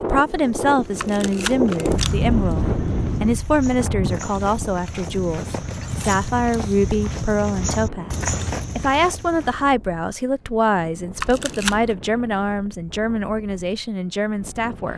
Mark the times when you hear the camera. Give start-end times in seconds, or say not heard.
0.9-2.3, 11.2-11.9.